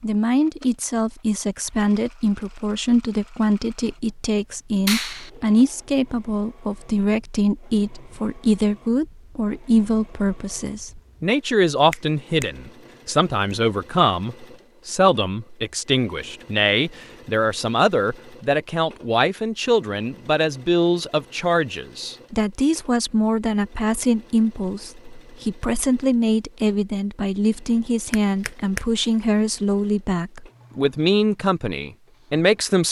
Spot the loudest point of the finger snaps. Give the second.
5 s.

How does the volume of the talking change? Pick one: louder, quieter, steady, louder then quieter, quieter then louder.
steady.